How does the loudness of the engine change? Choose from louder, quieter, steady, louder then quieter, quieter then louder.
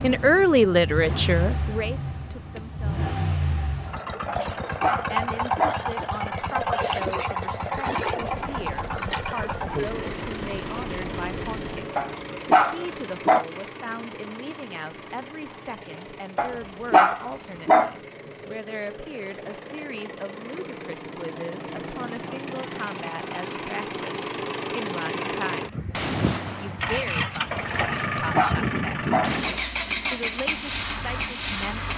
quieter then louder.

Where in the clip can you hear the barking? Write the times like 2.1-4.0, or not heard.
4.2-5.8, 11.9-13.4, 16.4-17.9, 27.8-29.4.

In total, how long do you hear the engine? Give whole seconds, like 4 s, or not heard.
32 s.